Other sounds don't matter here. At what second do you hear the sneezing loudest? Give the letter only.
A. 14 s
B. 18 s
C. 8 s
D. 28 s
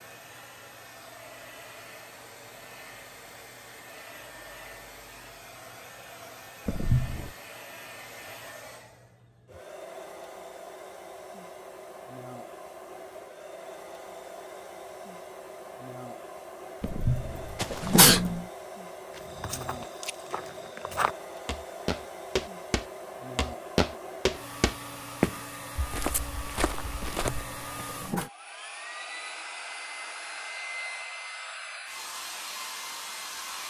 B.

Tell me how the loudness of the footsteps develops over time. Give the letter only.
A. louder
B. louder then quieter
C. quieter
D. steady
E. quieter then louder
B.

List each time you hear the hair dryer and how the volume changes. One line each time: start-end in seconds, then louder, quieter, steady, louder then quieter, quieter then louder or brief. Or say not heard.
0.0-33.6 louder.